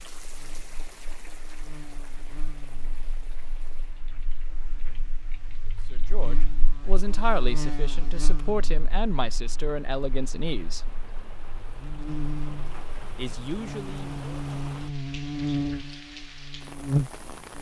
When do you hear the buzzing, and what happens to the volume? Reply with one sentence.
You can hear the buzzing from 0.1 to 17.5 s, getting louder.